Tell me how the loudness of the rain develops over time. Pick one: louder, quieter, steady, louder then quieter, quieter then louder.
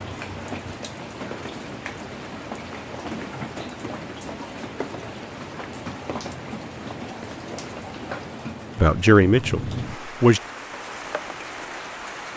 steady.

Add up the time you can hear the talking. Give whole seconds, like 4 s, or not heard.
2 s.